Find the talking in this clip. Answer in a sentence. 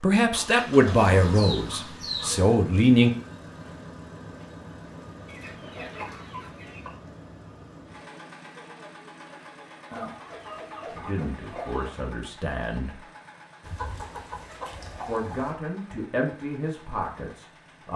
You can hear the talking from 0.0 to 3.1 s, from 10.9 to 13.0 s and from 15.0 to 17.9 s.